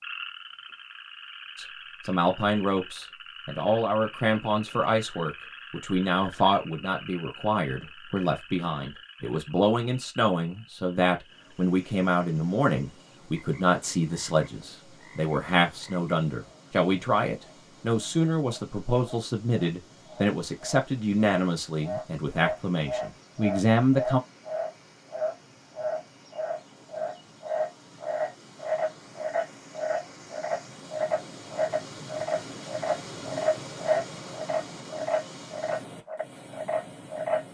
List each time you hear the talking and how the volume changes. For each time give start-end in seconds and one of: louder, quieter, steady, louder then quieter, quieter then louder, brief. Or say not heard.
1.6-24.2 steady.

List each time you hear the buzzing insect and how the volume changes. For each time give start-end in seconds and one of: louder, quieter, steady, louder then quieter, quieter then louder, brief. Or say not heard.
not heard.